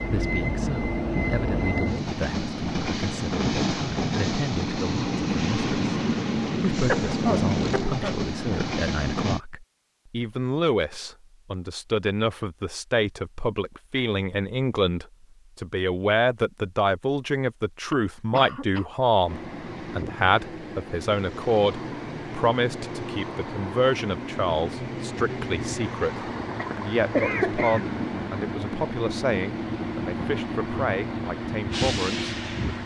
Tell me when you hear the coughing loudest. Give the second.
27 s.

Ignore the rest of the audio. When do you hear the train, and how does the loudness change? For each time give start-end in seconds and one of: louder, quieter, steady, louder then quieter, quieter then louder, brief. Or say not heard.
0.0-9.4 steady
19.2-32.8 louder.